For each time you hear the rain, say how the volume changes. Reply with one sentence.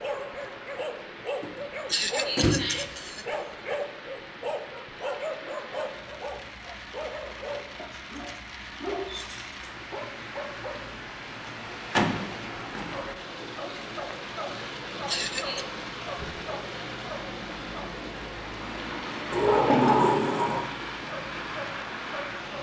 The rain can be heard from 0.0 to 22.5 s, getting louder.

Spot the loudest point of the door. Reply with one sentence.
The volume of the door peaks at 20 seconds.